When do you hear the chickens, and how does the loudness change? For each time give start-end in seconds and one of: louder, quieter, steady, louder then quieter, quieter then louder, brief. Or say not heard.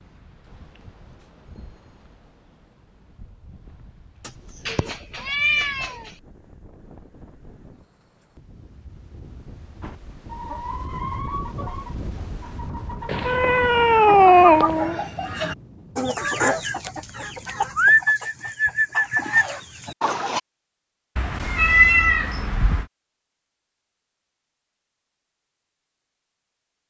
9.8-20.4 louder.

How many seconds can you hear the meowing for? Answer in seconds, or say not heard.
5 s.